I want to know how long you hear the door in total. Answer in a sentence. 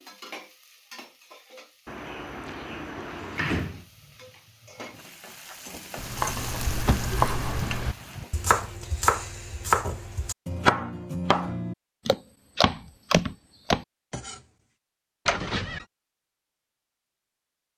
The door can be heard for 4 seconds in total.